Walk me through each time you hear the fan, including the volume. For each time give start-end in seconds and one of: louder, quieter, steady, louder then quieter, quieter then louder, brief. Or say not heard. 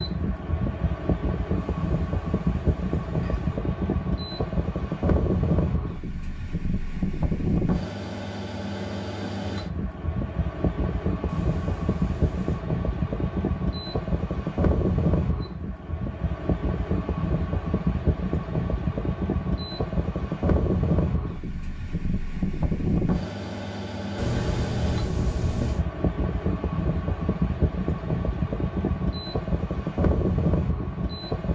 0.0-31.5 steady.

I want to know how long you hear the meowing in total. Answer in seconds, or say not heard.
5 s.